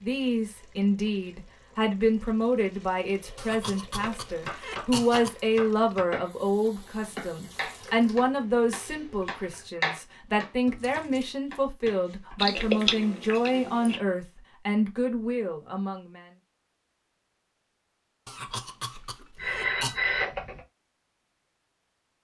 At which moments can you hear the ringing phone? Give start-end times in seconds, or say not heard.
19.4-20.6.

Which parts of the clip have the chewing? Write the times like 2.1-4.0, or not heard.
12.3-14.0.